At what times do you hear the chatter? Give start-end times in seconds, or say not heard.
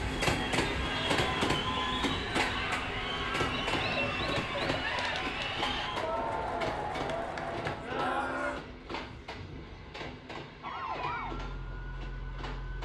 0.0-8.6.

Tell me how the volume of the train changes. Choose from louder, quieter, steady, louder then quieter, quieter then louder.
quieter.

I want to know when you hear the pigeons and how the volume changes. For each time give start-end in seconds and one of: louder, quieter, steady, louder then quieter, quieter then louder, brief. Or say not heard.
not heard.